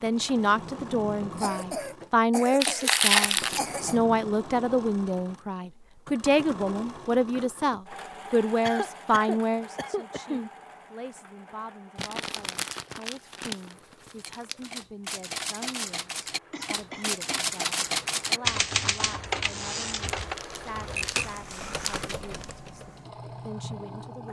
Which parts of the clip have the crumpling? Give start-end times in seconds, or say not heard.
2.6-3.6, 11.9-14.7, 20.1-22.6.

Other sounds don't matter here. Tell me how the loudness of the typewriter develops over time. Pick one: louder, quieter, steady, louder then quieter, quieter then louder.
louder then quieter.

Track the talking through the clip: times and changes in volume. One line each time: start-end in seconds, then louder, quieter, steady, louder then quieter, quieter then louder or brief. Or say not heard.
0.0-24.2 quieter.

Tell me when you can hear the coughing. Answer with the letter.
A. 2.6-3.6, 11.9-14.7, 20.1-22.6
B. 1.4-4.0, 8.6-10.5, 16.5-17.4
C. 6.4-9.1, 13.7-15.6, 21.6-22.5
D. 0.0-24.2
B.